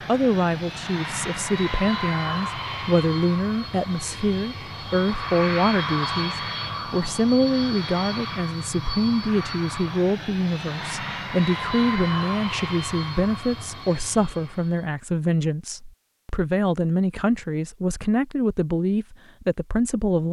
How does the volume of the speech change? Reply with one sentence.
The loudness of the speech stays about the same.